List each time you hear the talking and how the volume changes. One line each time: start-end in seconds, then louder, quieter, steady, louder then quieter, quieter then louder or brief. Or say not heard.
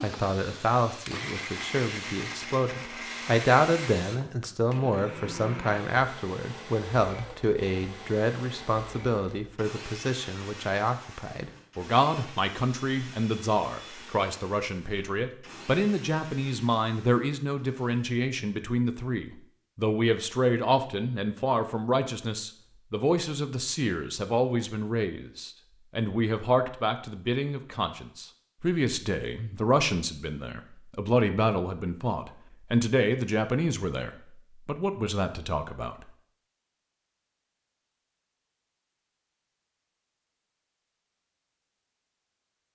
0.0-36.1 steady.